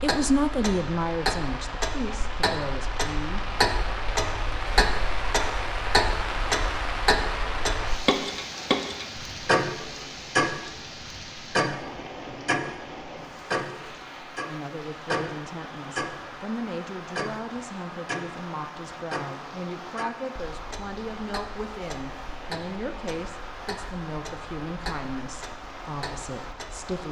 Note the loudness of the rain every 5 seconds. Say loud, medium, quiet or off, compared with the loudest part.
loud, loud, medium, medium, medium, medium.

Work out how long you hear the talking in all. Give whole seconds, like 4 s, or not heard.
16 s.